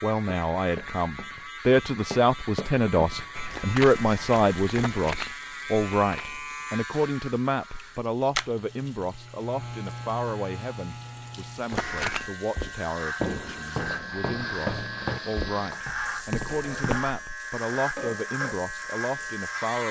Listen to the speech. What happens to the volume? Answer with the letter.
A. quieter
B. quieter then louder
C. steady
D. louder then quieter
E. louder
A.